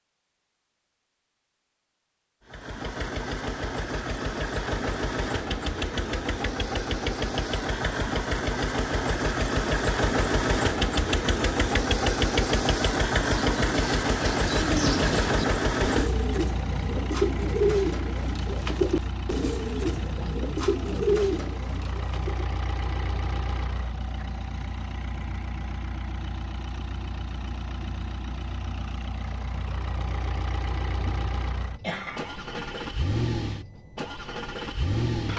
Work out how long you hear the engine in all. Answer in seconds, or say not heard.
33 s.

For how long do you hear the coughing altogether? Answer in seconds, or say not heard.
2 s.